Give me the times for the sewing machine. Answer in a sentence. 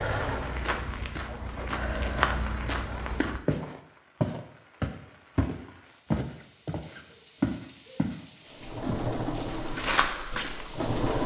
The sewing machine can be heard from 0.0 to 3.3 s and from 8.5 to 11.2 s.